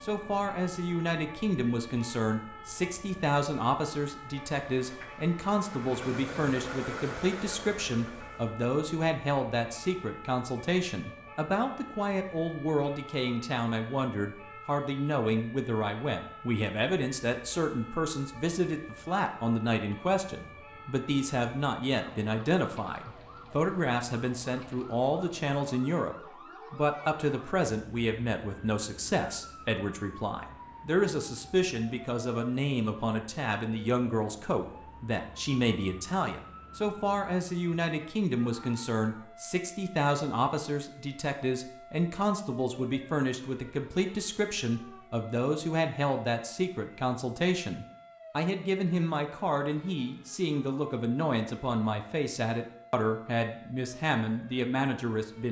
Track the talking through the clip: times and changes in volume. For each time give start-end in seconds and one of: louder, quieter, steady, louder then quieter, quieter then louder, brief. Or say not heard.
0.0-55.4 steady.